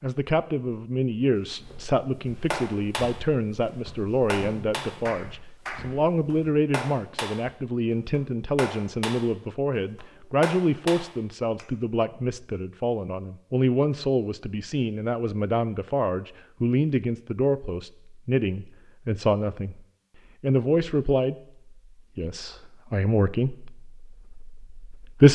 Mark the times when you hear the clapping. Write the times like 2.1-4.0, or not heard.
2.5-11.7.